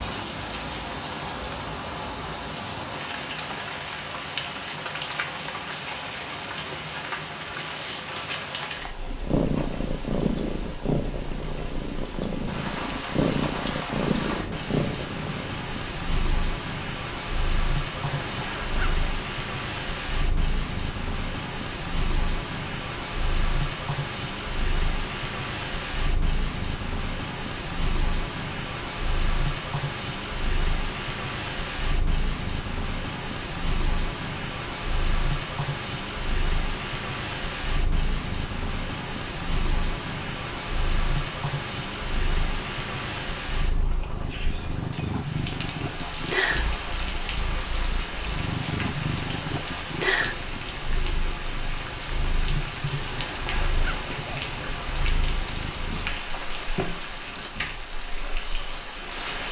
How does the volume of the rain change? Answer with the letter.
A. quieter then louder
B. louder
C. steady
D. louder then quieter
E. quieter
C.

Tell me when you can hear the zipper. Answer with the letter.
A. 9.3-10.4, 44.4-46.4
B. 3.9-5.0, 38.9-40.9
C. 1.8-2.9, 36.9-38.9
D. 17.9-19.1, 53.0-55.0
D.